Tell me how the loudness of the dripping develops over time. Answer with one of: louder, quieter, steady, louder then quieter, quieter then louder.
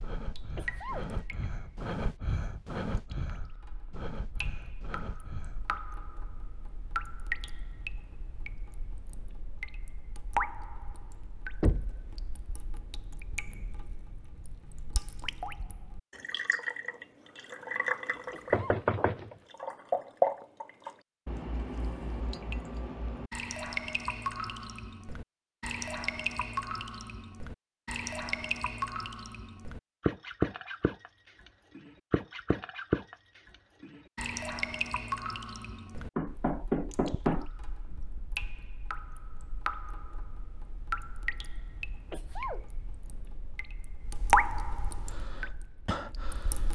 louder.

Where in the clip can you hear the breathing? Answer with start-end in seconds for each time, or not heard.
0.0-5.8, 45.0-46.7.